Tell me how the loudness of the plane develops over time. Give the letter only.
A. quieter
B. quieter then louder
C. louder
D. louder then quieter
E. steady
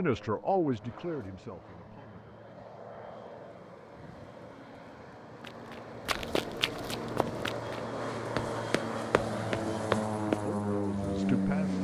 C.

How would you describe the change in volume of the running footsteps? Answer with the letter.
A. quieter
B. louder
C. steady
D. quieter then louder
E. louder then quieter
D.